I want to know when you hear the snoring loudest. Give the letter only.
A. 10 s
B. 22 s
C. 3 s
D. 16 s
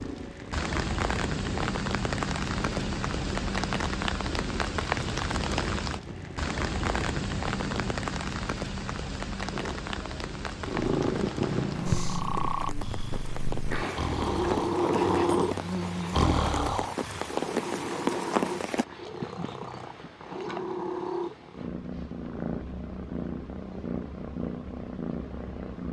D.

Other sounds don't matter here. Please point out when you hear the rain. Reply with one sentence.
You can hear the rain from 0.0 to 18.9 s.